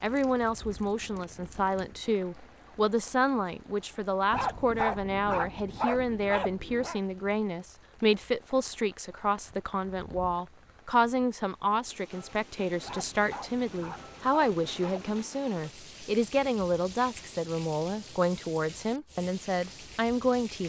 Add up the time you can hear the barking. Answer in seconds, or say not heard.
5 s.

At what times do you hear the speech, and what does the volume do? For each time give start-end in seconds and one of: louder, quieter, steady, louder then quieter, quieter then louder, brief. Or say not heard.
0.0-20.6 steady.